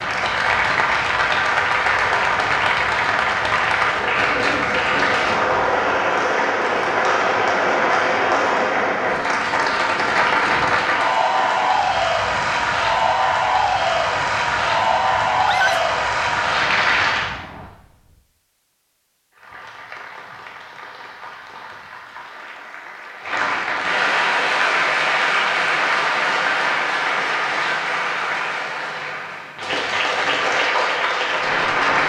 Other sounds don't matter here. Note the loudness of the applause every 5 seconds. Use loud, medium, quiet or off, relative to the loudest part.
loud, loud, loud, loud, medium, loud, loud.